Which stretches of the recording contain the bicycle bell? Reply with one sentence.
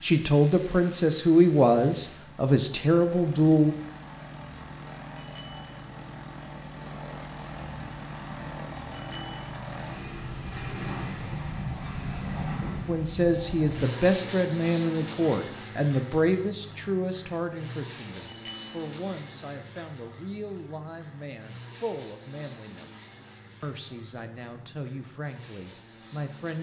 The bicycle bell can be heard from 5.2 to 5.8 s, from 8.9 to 9.5 s and from 18.2 to 18.9 s.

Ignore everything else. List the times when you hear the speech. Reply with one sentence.
You can hear the speech from 0.0 to 3.8 s and from 12.8 to 26.5 s.